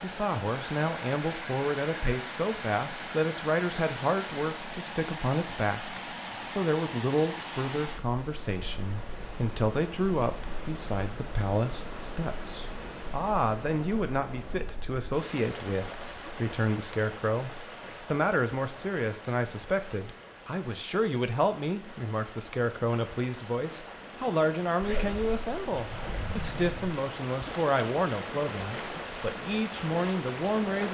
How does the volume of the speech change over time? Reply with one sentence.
The volume of the speech stays about the same.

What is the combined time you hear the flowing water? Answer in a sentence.
The flowing water can be heard for 31 seconds in total.